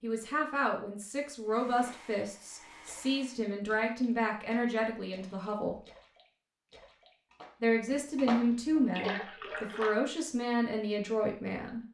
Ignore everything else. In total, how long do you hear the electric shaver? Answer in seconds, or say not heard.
not heard.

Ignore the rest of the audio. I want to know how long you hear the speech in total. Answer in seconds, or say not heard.
10 s.